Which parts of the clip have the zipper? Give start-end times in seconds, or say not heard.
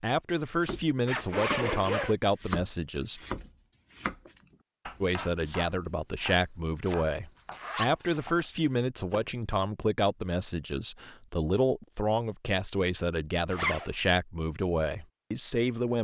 1.1-2.1, 7.5-8.4, 13.5-13.9.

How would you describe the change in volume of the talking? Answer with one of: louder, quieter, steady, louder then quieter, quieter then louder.
steady.